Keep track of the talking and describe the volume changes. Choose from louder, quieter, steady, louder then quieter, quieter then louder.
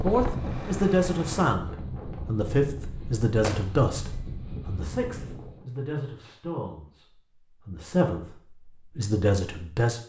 quieter then louder.